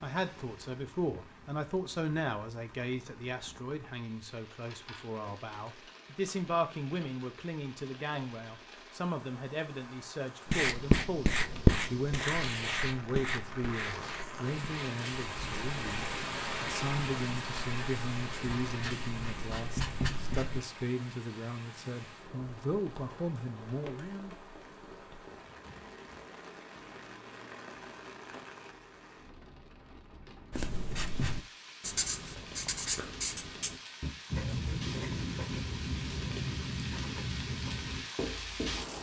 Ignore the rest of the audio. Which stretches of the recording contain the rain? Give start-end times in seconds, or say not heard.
0.0-38.9.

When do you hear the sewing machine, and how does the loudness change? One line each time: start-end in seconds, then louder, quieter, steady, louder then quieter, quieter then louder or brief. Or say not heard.
not heard.